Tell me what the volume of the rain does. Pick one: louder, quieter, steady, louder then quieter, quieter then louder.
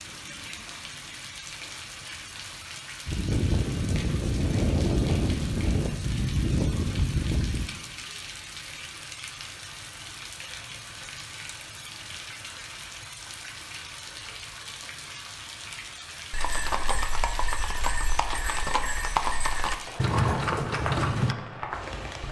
steady.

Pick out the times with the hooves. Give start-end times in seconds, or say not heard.
3.0-7.7, 16.3-21.4.